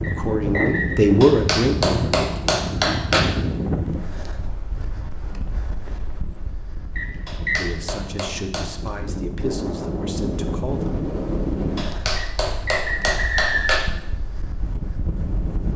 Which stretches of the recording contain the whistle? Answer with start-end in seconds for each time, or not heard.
0.0-1.0, 7.0-7.7, 12.2-13.8.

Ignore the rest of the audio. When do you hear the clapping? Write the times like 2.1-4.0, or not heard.
1.2-3.2, 7.2-8.9, 11.8-13.8.